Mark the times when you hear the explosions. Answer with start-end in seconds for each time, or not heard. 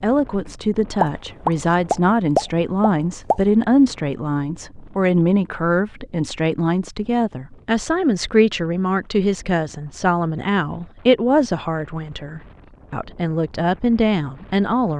1.0-3.4.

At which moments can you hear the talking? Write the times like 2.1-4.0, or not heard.
0.0-14.9.